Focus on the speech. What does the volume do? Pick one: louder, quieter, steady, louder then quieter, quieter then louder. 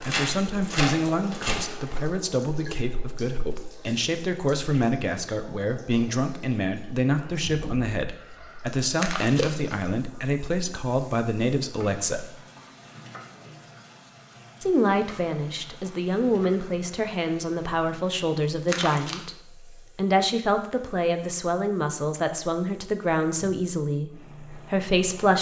steady.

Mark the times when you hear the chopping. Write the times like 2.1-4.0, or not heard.
0.0-2.0.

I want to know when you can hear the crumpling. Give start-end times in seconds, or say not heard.
8.9-9.5, 18.6-19.2.